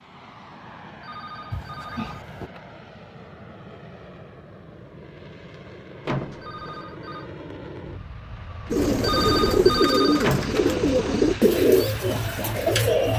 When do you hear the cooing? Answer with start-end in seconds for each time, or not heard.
8.7-13.1.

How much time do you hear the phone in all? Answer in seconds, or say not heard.
4 s.